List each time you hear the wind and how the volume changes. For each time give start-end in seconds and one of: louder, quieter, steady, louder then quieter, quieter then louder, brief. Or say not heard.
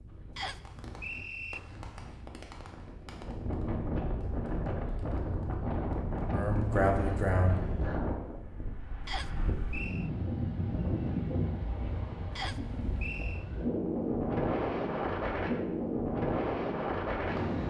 0.0-17.6 louder.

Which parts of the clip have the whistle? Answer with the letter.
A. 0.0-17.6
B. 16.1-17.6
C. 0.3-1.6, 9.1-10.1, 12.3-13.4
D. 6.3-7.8
C.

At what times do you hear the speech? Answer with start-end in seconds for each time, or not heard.
6.3-7.8.